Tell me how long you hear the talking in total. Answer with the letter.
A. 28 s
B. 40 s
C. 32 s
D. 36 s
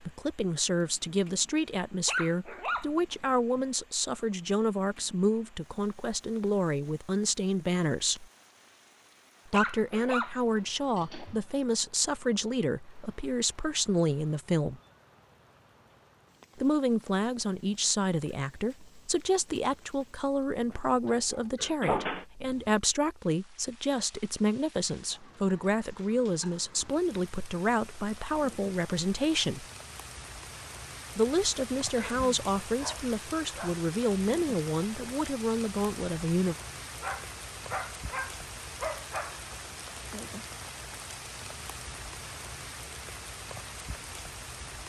C.